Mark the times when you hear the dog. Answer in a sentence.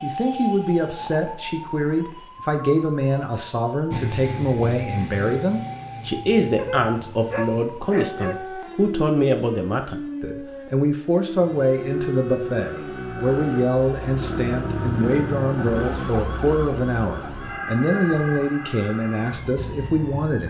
The dog can be heard from 6.5 to 8.4 s.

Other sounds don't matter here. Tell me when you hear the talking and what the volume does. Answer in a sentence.
The talking can be heard from 0.0 to 20.4 s, at a steady volume.